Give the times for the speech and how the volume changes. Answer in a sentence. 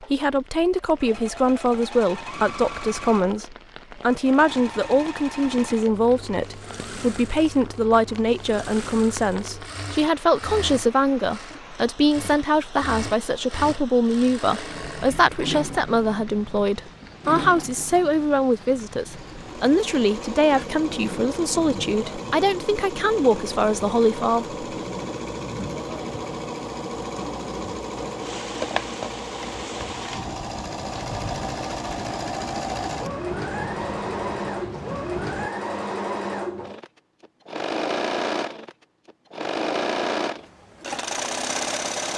You can hear the speech from 0.0 to 24.6 s, at a steady volume.